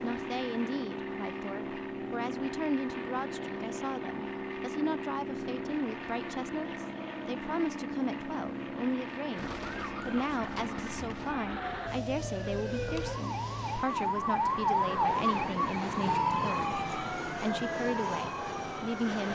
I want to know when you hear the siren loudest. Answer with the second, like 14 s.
15 s.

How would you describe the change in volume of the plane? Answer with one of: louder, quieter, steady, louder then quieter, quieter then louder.
steady.